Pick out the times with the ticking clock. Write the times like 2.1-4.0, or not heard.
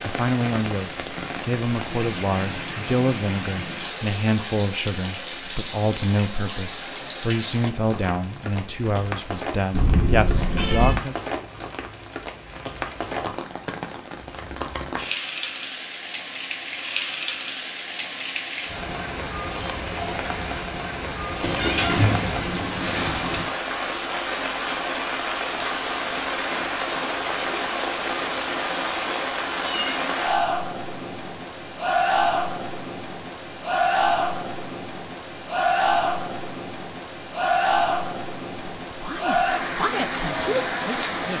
not heard.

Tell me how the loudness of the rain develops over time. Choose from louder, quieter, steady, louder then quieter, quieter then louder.
louder.